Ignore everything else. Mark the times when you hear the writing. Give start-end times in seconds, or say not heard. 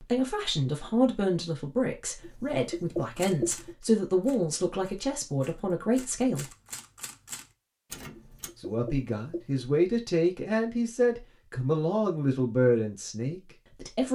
2.2-3.8, 8.2-9.7.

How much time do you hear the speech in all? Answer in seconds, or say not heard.
12 s.